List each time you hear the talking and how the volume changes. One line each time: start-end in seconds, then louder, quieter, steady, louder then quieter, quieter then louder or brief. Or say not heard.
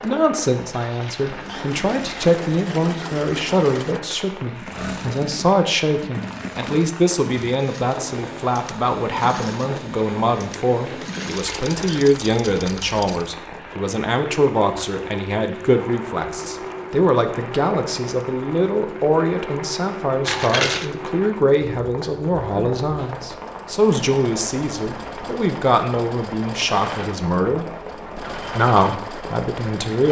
0.0-27.6 steady
28.4-30.0 brief.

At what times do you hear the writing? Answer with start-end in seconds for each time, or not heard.
not heard.